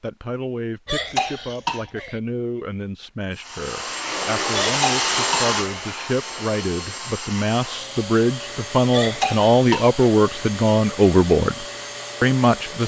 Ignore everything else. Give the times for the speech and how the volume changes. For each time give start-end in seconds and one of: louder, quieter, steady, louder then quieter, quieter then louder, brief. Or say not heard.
0.0-12.8 louder.